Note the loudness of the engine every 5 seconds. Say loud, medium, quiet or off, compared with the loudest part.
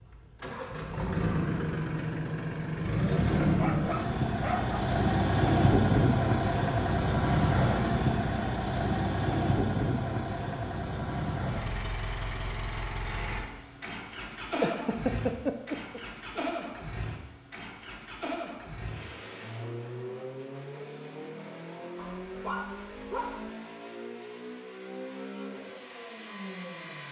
loud, loud, medium, quiet, quiet, quiet.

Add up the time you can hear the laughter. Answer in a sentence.
The laughter can be heard for 2 seconds in total.